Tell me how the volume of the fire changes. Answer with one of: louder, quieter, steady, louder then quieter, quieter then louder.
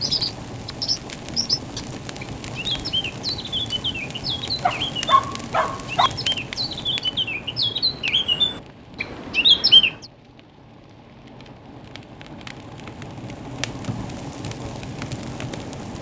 quieter then louder.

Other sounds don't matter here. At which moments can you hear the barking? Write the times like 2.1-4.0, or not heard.
4.6-6.1.